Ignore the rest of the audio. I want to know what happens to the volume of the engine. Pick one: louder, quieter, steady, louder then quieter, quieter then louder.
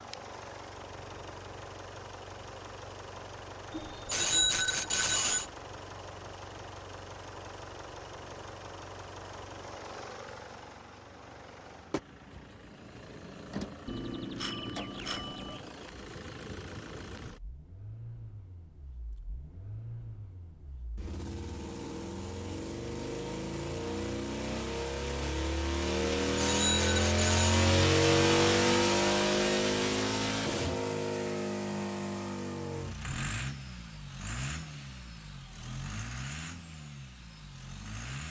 louder then quieter.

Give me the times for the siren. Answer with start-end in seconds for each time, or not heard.
not heard.